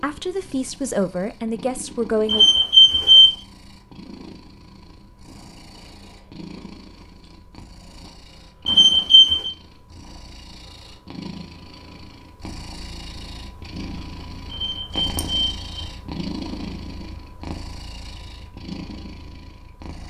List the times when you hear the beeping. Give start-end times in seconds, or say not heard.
2.2-3.4, 8.7-9.5, 14.5-15.9.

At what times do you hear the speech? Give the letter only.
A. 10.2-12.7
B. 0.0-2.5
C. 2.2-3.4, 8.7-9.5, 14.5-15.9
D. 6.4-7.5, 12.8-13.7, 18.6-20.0
B.